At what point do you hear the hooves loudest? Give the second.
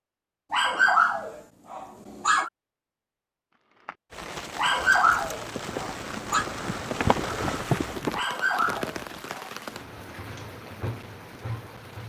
8 s.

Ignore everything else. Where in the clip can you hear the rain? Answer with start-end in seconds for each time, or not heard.
4.1-12.0.